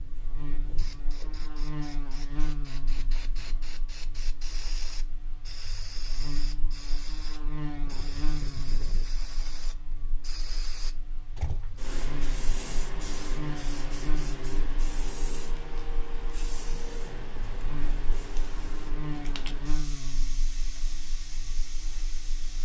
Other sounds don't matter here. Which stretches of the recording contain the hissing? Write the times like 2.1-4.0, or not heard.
0.0-22.6.